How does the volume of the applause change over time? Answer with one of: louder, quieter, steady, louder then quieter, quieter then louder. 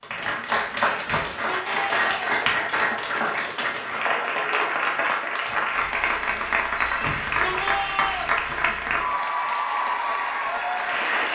steady.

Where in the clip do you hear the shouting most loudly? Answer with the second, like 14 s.
8 s.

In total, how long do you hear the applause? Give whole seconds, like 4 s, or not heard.
11 s.